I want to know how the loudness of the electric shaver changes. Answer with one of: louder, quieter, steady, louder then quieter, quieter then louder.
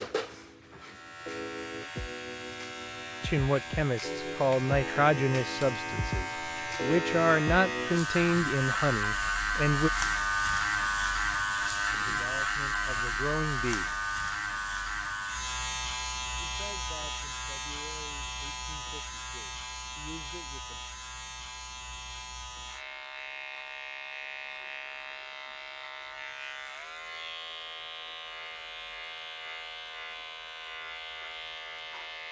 louder then quieter.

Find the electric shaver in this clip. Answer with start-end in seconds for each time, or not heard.
0.0-32.2.